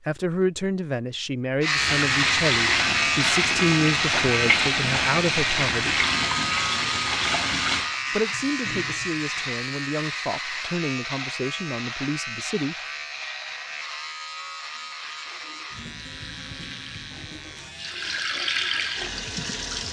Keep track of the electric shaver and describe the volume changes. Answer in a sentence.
The volume of the electric shaver goes down.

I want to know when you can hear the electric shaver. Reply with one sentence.
You can hear the electric shaver from 1.6 to 19.8 s.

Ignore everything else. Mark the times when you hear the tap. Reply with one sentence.
The tap can be heard from 1.8 to 9.5 s and from 14.9 to 19.8 s.